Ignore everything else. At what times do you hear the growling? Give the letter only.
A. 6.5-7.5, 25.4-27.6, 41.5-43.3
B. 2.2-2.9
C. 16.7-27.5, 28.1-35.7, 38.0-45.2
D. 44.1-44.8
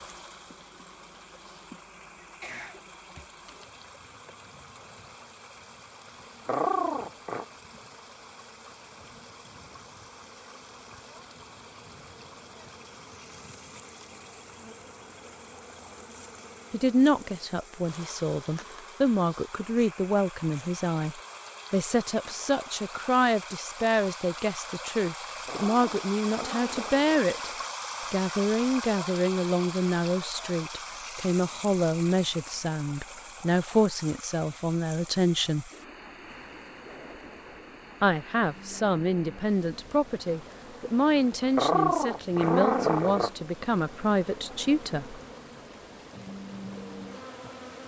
A.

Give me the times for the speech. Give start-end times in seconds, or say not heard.
16.7-27.5, 28.1-35.7, 38.0-45.2.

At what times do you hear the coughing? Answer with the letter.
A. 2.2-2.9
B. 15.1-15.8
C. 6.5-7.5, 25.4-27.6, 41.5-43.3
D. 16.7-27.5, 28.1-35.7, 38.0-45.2
A.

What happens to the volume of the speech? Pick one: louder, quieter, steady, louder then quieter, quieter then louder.
steady.